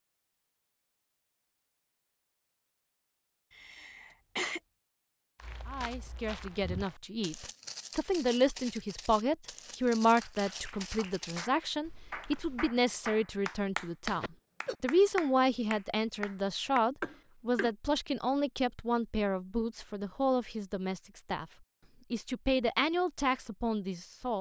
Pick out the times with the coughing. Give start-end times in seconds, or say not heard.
3.5-4.6, 14.2-14.8, 17.0-17.7.